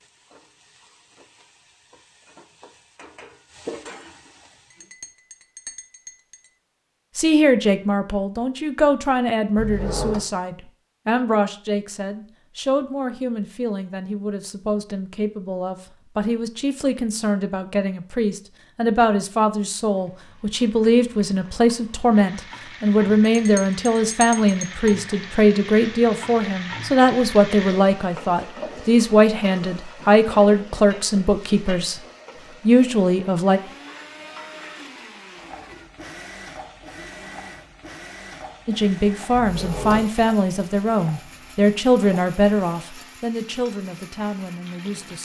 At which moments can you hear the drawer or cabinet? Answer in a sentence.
You can hear the drawer or cabinet from 9.6 to 10.2 s and from 39.3 to 40.1 s.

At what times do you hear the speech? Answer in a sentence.
You can hear the speech from 7.2 to 32.0 s, from 32.6 to 33.6 s and from 38.6 to 45.2 s.